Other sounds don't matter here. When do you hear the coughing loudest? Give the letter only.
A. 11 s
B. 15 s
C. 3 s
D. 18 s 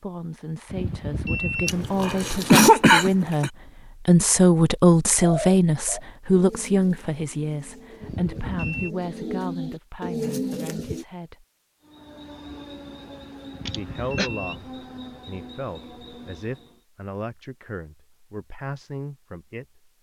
C.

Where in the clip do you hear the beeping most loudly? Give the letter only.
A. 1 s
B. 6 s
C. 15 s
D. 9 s
A.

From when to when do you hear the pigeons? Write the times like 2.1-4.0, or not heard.
5.2-11.1.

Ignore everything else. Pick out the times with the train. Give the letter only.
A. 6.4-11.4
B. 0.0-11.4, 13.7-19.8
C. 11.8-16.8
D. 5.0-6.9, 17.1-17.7
C.